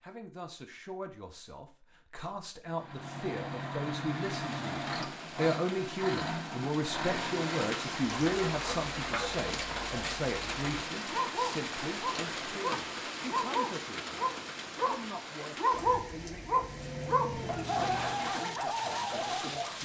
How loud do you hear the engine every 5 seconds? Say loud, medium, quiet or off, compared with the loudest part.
loud, loud, off, medium.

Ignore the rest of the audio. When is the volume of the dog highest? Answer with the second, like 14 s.
16 s.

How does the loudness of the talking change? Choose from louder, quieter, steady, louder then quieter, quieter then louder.
louder then quieter.